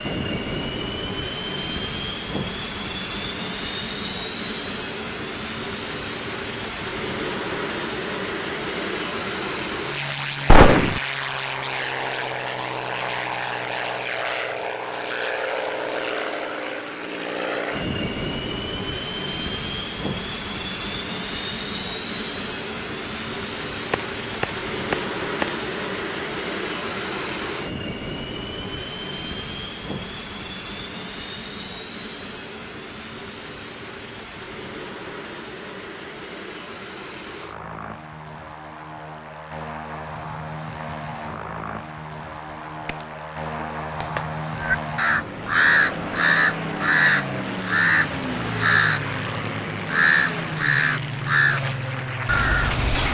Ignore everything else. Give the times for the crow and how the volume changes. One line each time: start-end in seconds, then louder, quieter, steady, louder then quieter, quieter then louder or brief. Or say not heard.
44.5-53.0 steady.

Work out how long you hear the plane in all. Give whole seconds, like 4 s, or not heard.
53 s.